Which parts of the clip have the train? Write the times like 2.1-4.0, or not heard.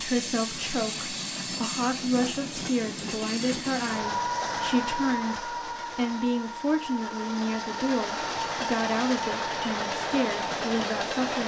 0.0-11.4.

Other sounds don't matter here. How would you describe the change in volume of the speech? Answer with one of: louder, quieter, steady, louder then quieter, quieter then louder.
steady.